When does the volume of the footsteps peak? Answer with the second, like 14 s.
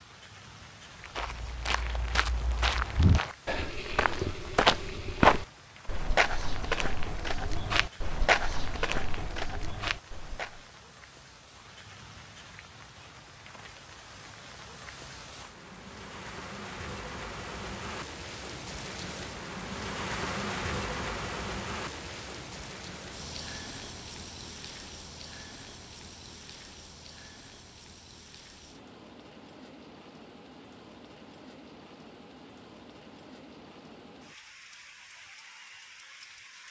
5 s.